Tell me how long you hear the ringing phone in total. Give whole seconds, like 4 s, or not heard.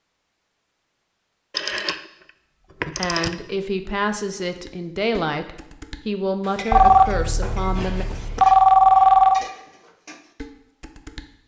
4 s.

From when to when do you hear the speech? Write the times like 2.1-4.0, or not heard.
3.0-8.1.